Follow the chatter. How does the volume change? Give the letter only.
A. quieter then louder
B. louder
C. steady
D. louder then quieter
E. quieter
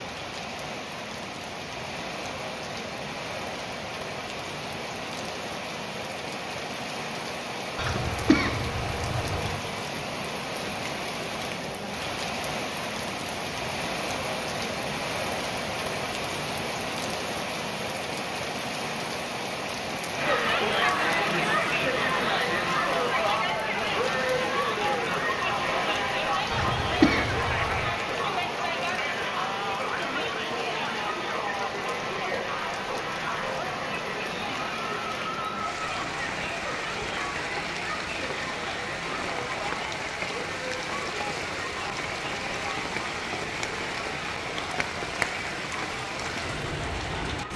E.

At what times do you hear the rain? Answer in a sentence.
The rain can be heard from 0.0 to 47.5 s.